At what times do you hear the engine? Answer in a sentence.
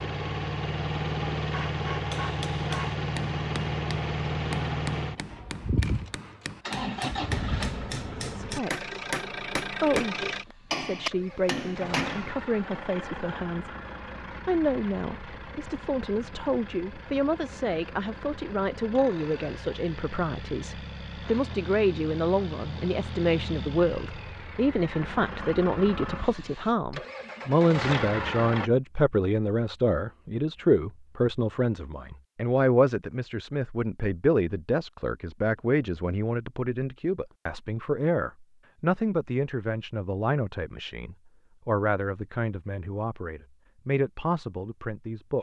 You can hear the engine from 0.0 to 28.7 s.